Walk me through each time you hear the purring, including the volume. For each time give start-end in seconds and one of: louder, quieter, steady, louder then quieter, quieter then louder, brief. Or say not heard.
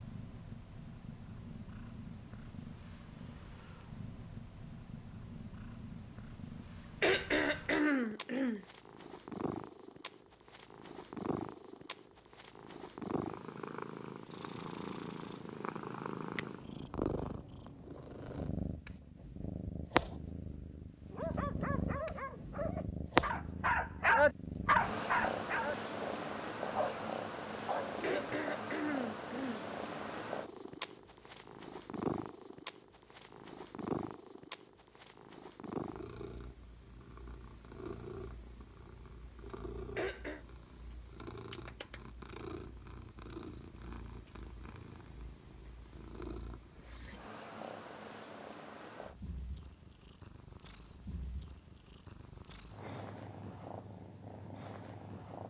0.0-55.4 louder then quieter.